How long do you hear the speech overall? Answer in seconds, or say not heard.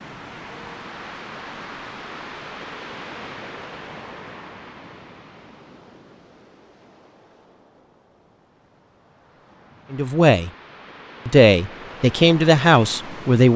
3 s.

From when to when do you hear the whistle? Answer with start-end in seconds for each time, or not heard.
not heard.